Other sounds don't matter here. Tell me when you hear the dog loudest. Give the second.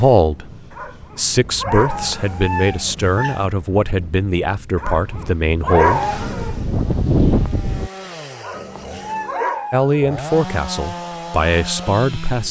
6 s.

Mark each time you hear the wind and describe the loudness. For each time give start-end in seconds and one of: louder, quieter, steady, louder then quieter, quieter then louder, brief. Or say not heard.
0.0-7.9 louder.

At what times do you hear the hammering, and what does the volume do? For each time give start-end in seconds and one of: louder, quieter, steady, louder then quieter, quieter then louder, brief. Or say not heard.
not heard.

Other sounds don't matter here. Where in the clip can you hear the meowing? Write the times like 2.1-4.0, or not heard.
1.9-3.5, 8.5-9.3.